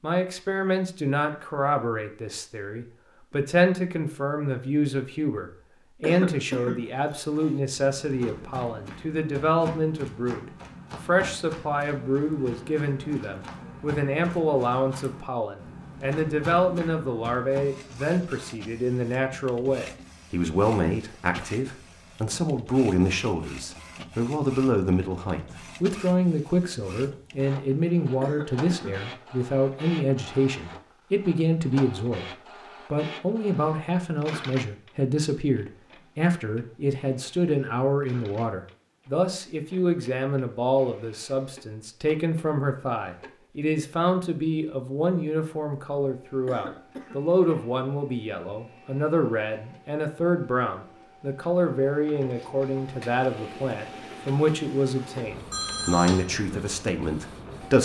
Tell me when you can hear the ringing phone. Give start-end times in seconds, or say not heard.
55.5-56.2.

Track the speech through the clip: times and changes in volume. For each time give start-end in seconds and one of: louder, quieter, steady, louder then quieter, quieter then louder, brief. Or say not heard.
0.0-32.2 steady
32.9-57.7 steady.